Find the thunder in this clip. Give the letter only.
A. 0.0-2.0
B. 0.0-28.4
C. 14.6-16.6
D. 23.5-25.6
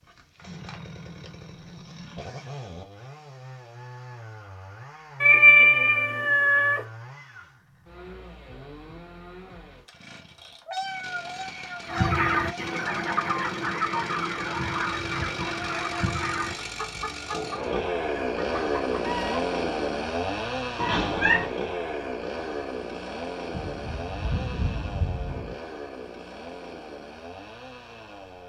D.